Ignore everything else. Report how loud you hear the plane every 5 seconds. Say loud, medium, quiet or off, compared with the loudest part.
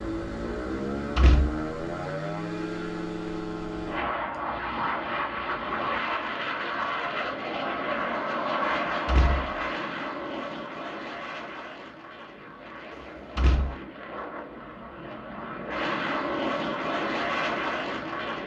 loud, loud, medium, loud.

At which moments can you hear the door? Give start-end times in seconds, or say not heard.
1.1-1.6, 9.1-9.6, 13.3-13.8.